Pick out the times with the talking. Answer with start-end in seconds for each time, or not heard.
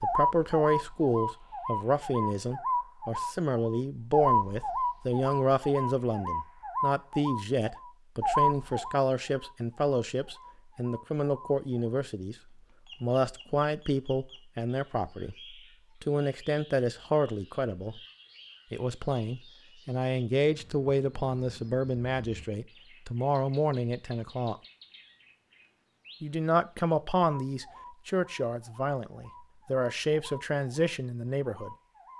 0.0-12.3, 13.0-15.3, 16.0-18.0, 18.7-24.6, 26.2-32.1.